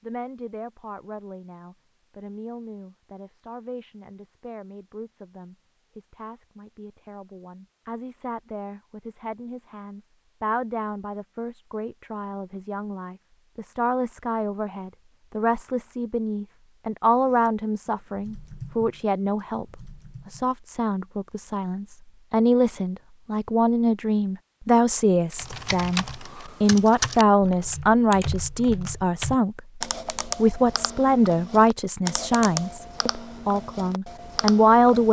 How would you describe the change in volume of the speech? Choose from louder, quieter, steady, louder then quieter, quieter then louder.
louder.